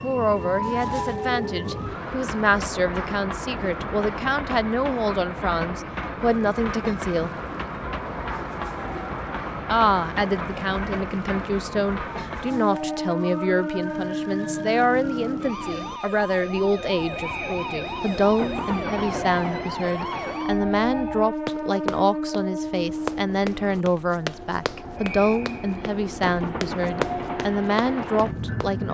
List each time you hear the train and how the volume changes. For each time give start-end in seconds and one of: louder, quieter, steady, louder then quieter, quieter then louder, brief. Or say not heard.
0.0-28.8 steady.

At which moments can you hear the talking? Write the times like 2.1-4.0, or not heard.
0.0-7.3, 9.7-28.8.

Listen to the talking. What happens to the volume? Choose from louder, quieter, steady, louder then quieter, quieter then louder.
steady.